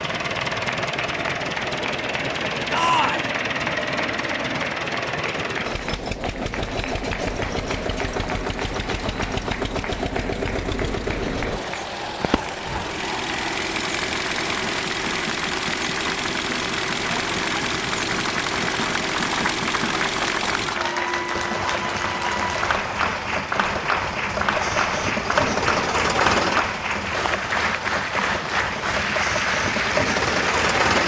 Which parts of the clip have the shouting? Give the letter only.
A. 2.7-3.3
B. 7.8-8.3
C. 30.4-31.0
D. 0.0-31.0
A.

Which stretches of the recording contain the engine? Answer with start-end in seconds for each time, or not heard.
0.0-31.0.